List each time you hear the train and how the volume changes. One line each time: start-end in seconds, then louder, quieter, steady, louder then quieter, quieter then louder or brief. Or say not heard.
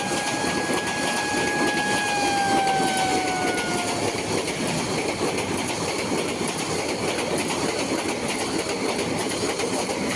0.0-10.1 steady.